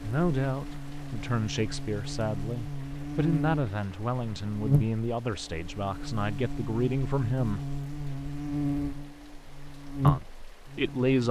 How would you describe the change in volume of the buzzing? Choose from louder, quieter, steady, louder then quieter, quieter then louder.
louder.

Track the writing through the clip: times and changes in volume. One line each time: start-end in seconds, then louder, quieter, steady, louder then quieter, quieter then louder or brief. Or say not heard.
not heard.